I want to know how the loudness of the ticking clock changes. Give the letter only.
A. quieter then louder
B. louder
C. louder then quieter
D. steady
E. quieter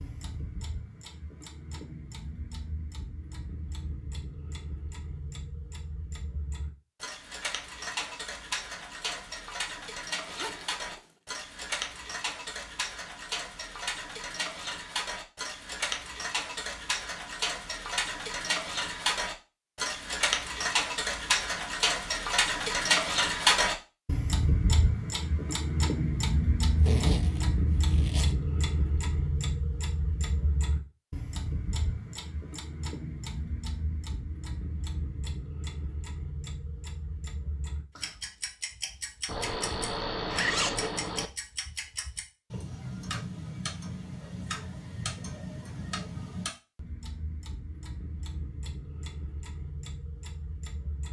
C.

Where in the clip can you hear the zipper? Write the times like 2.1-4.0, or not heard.
10.2-11.2, 26.8-28.4, 39.2-41.3.